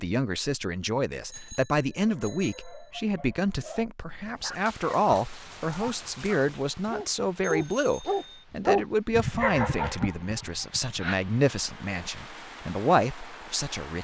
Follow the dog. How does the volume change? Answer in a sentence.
The volume of the dog goes up, then down.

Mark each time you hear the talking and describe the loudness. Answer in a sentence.
You can hear the talking from 0.0 to 13.9 s, at a steady volume.